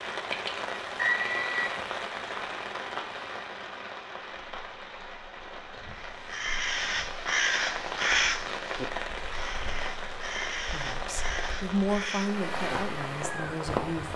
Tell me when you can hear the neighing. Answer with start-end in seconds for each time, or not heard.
0.9-1.8.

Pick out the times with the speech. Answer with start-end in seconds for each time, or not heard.
10.7-14.1.